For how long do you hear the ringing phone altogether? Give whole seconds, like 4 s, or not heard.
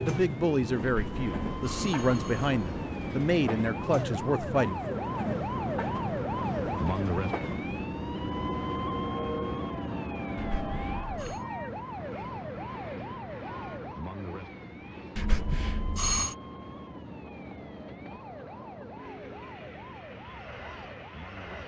4 s.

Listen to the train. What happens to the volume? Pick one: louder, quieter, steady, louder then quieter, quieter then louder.
quieter.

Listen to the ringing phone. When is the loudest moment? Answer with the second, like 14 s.
16 s.